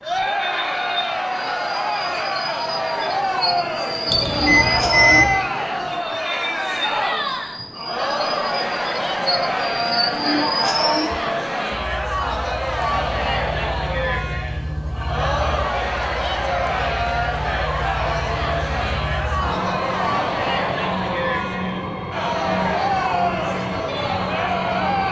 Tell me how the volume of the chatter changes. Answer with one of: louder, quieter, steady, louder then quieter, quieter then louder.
steady.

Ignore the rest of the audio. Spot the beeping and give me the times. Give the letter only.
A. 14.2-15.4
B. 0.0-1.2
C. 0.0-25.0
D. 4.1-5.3
D.